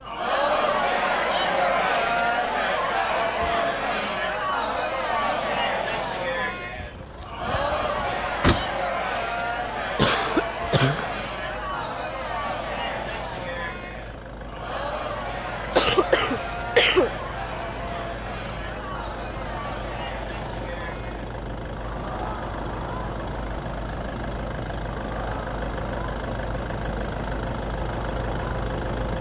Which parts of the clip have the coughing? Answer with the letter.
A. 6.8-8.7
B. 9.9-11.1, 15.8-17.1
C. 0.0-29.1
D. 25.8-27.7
B.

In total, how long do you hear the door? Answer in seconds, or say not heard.
2 s.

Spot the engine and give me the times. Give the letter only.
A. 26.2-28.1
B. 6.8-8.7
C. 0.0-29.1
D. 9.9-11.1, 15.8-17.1
C.